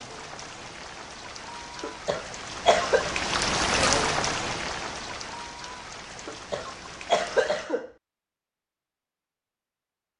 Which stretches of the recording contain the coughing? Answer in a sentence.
The coughing can be heard from 1.8 to 3.1 s and from 6.2 to 7.9 s.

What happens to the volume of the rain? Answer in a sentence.
The volume of the rain goes up, then down.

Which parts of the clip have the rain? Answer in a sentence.
The rain can be heard from 0.0 to 7.7 s.